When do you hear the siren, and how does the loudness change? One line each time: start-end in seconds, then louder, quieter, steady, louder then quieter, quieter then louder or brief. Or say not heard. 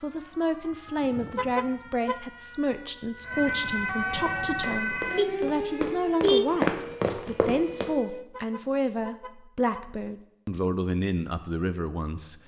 0.0-8.3 louder then quieter.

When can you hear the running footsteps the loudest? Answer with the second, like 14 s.
7 s.